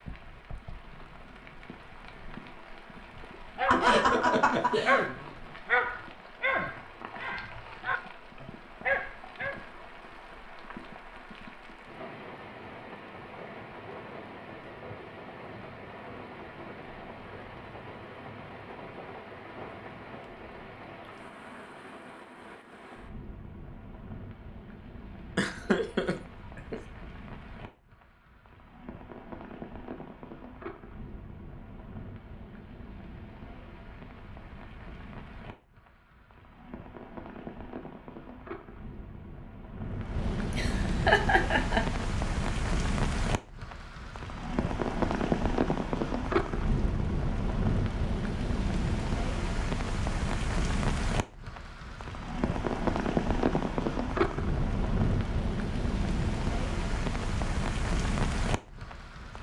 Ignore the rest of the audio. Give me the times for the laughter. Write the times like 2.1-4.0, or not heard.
3.7-5.1, 25.4-26.8, 40.5-42.0.